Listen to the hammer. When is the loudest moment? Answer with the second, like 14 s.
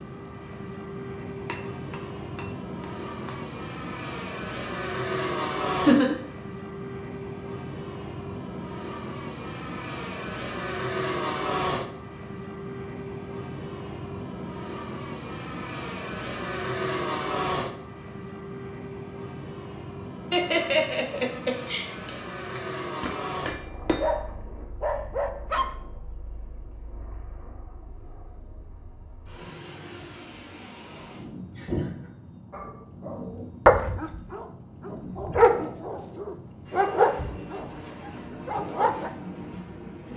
24 s.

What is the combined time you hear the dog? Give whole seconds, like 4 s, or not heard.
8 s.